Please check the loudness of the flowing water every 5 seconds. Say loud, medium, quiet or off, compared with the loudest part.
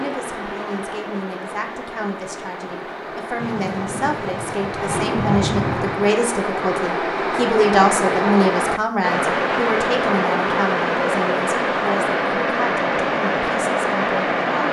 medium, loud, loud.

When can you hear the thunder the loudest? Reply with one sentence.
The loudest moment of the thunder is at 5 seconds.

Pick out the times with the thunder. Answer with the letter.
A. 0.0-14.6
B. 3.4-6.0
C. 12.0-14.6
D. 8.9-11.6
B.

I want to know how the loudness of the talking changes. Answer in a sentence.
The loudness of the talking goes up, then down.